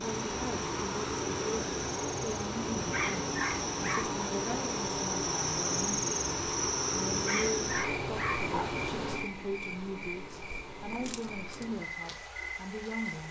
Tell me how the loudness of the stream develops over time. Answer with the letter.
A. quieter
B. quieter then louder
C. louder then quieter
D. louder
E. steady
A.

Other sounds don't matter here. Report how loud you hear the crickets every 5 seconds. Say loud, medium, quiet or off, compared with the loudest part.
medium, loud, medium.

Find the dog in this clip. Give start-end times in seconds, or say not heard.
2.8-4.2, 7.1-8.7.